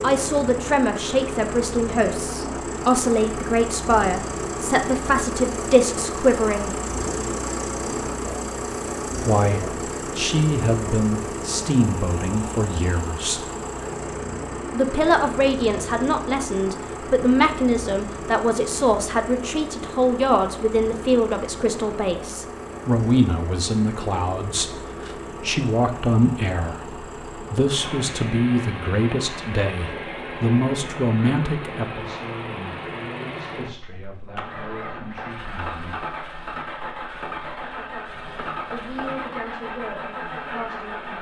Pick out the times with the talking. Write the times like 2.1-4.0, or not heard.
0.0-6.8, 9.2-13.4, 14.7-36.0, 38.6-41.1.